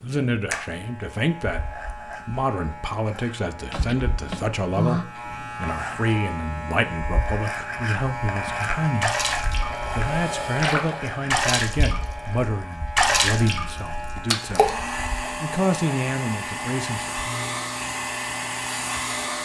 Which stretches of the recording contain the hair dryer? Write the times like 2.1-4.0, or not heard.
9.6-12.5, 14.4-19.4.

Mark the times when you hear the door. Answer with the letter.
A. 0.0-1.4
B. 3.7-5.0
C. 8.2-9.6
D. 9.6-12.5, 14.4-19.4
B.